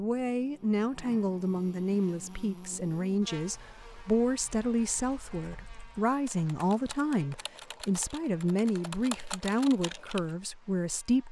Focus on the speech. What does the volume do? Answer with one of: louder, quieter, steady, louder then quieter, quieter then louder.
steady.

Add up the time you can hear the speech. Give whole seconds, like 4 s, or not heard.
11 s.